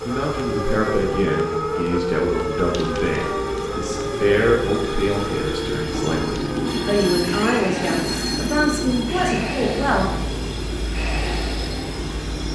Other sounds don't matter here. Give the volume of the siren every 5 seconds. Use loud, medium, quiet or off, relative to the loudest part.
loud, medium, medium.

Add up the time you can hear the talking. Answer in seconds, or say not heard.
10 s.